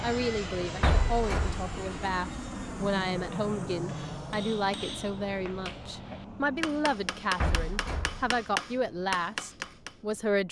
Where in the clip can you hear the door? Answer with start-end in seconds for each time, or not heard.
0.8-1.7, 7.4-8.4.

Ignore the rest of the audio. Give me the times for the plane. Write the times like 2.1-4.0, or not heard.
0.0-10.4.